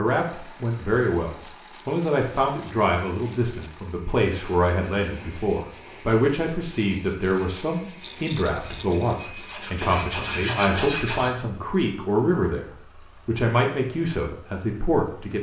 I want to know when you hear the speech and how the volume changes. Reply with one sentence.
You can hear the speech from 0.0 to 12.7 s, at a steady volume; and briefly from 13.2 to 15.3 s.